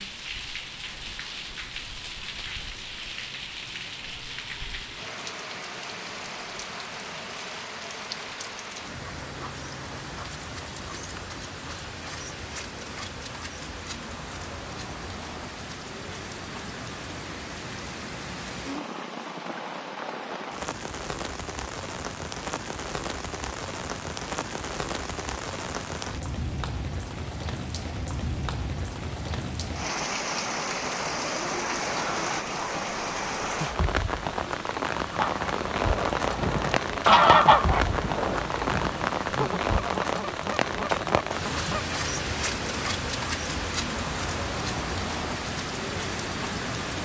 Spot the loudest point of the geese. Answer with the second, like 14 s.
37 s.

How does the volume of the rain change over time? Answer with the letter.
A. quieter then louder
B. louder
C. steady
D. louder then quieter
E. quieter
B.